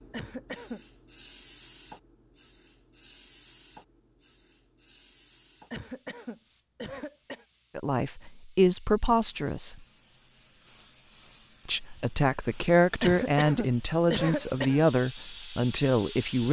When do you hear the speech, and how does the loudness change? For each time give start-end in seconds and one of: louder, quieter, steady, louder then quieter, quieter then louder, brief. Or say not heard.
7.8-9.8 brief
11.7-16.4 steady.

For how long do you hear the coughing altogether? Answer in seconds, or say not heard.
4 s.